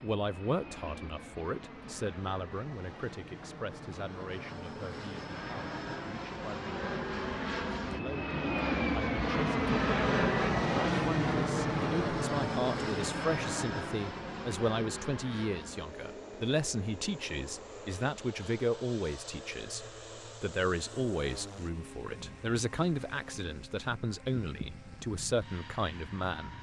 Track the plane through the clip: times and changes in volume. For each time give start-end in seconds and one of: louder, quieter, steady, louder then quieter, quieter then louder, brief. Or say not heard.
0.0-26.5 louder then quieter.